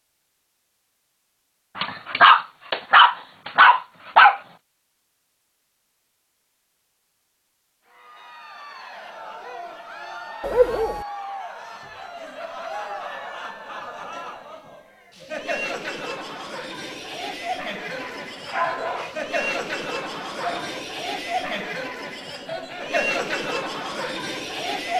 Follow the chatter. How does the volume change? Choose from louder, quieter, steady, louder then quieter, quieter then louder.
louder.